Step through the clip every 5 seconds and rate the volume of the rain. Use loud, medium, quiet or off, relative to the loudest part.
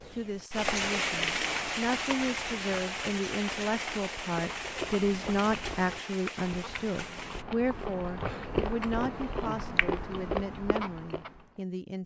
loud, medium, off.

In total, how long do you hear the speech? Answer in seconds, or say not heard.
12 s.